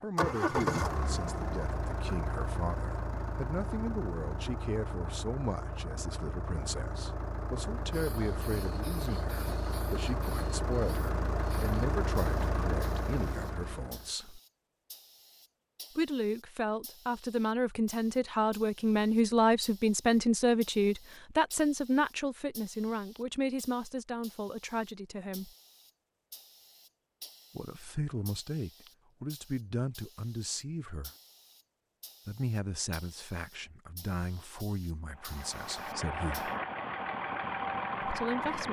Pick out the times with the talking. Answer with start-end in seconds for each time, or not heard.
0.0-14.4, 15.9-25.5, 27.6-31.1, 32.2-36.5, 38.0-38.6.